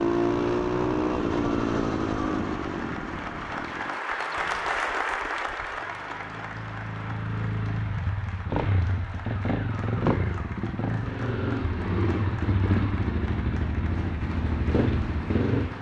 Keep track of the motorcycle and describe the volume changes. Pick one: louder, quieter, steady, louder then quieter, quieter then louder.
quieter then louder.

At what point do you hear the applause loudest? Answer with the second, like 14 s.
5 s.